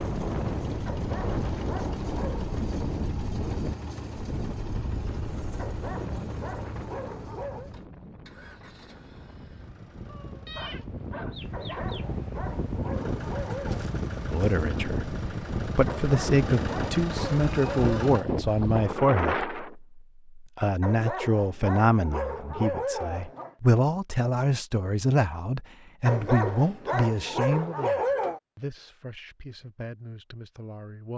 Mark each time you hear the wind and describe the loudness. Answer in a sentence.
The wind can be heard from 0.0 to 19.8 s, getting quieter then louder.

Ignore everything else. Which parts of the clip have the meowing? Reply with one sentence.
You can hear the meowing from 10.1 to 12.1 s.